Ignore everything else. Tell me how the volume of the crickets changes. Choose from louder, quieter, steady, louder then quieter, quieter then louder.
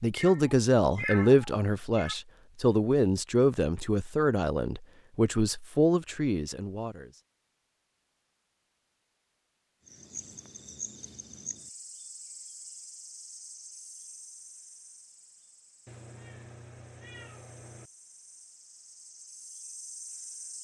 quieter then louder.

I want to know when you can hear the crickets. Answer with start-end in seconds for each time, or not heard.
9.8-20.5.